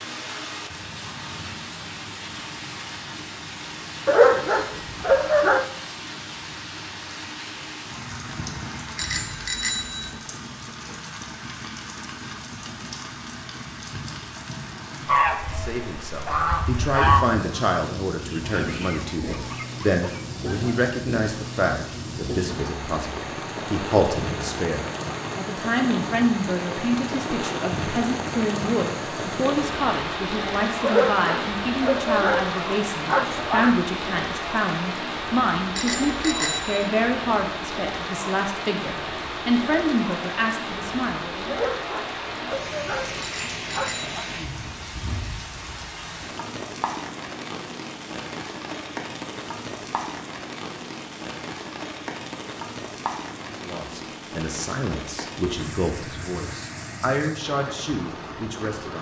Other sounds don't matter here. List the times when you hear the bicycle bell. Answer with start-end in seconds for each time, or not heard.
8.9-10.2, 35.8-36.9, 43.2-44.1.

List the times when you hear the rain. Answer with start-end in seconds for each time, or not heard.
0.0-58.9.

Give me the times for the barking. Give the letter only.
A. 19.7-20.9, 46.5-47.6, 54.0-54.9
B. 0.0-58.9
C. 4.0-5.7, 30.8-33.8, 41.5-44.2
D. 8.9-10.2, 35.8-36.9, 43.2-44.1
C.